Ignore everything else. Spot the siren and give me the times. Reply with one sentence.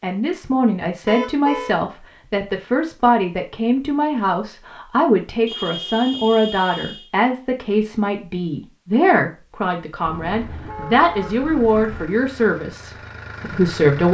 The siren can't be heard in this clip.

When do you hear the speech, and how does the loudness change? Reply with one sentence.
The speech can be heard from 0.0 to 14.0 s, at a steady volume.